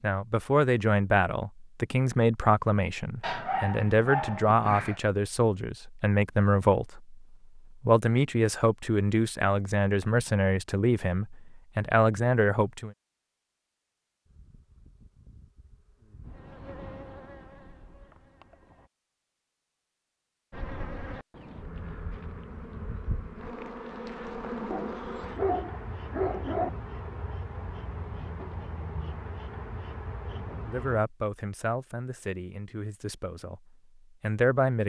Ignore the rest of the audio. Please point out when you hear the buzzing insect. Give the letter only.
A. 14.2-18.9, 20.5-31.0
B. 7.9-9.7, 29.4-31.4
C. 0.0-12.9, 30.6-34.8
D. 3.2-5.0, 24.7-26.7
A.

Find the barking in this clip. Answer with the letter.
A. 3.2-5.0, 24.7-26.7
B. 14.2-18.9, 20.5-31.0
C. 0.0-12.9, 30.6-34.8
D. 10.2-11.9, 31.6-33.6
A.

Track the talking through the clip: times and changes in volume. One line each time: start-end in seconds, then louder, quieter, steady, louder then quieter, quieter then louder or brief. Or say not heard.
0.0-12.9 steady
30.6-34.8 quieter then louder.